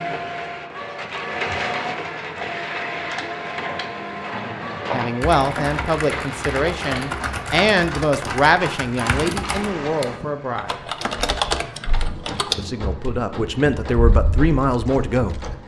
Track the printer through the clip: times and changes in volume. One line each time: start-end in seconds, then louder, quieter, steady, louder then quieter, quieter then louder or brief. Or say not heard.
0.0-15.6 quieter.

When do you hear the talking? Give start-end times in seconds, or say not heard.
4.9-10.8, 12.6-15.4.